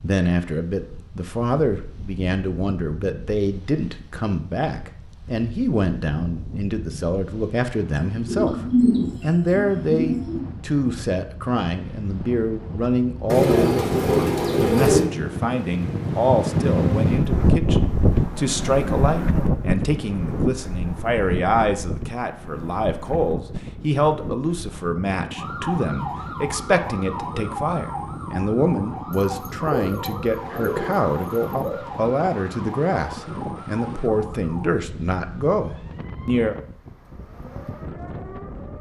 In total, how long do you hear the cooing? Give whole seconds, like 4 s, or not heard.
7 s.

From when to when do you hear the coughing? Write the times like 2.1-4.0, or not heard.
not heard.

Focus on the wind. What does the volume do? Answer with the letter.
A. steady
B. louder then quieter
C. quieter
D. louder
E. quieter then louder
B.